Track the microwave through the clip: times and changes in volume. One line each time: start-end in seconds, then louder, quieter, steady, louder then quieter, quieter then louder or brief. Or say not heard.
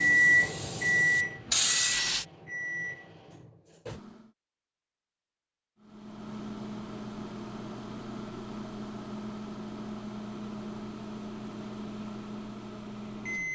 0.0-4.3 quieter
5.8-13.5 steady.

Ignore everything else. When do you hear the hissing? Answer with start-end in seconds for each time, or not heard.
0.0-2.2.